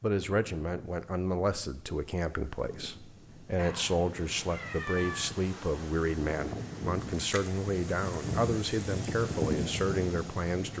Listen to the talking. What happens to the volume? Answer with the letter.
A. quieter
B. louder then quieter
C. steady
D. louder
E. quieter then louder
C.